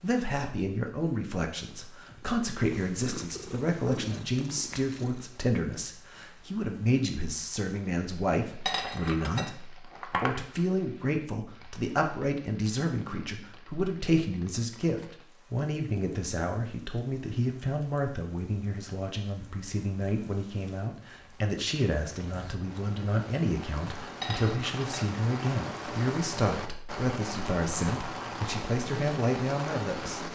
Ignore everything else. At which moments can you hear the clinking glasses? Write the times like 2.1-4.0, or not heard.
8.7-10.4, 24.2-24.9.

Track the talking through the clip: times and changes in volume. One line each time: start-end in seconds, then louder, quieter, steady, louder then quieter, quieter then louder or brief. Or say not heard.
0.0-30.3 steady.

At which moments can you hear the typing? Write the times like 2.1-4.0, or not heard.
not heard.